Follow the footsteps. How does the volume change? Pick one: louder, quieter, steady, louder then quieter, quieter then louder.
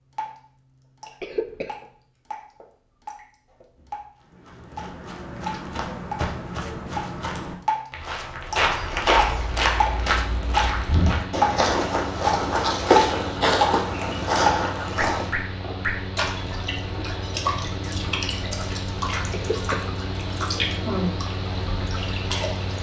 louder.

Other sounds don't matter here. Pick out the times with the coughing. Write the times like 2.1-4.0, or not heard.
1.2-1.8, 19.3-19.9.